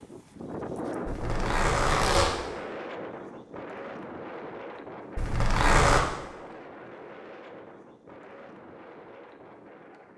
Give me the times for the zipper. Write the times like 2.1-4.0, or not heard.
1.1-2.3, 5.2-6.0.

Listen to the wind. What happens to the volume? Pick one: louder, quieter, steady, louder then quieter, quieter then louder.
quieter.